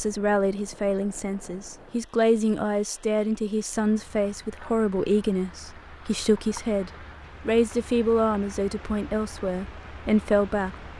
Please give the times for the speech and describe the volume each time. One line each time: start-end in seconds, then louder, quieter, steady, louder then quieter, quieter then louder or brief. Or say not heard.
0.0-10.8 steady.